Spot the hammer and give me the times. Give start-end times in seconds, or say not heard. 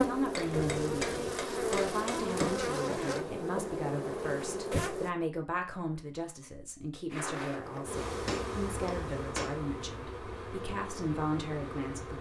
0.3-2.6, 7.8-9.6.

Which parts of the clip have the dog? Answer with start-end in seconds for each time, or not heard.
not heard.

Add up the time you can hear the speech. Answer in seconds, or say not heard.
12 s.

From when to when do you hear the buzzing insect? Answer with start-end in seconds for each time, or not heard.
0.0-5.1, 7.1-12.1.